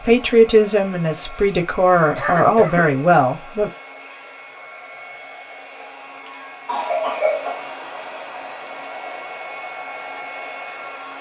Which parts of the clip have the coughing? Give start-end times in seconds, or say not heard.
2.1-2.9, 5.8-7.7.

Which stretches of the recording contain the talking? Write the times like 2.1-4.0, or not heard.
0.0-3.7.